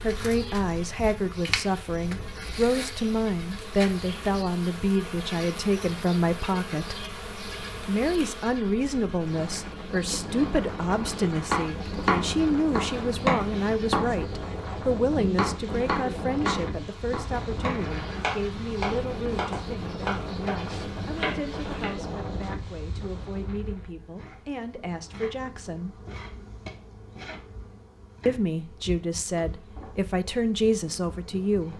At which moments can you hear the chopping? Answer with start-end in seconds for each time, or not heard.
11.3-21.9.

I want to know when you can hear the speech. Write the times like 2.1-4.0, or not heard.
0.0-7.0, 7.8-25.9, 28.2-31.7.